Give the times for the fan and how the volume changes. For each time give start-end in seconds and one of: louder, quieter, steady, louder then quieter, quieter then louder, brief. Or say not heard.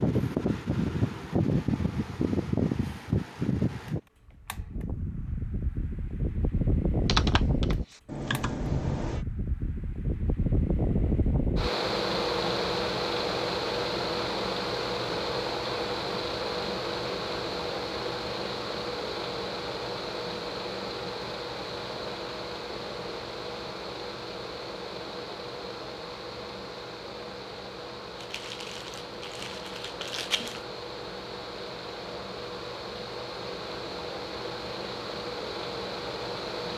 0.0-36.7 quieter.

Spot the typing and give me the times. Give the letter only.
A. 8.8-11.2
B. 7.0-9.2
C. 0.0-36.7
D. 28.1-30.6
B.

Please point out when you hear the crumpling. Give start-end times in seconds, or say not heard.
28.1-30.6.